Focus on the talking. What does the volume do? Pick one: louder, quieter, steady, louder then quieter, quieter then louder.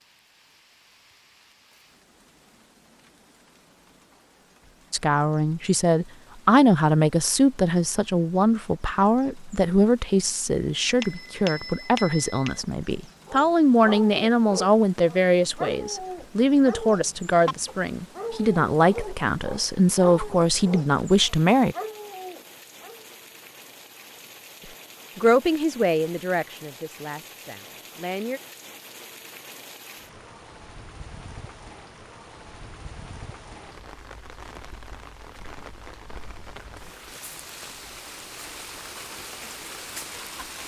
steady.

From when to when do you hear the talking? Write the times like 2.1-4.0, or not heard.
4.9-21.8, 24.6-28.4.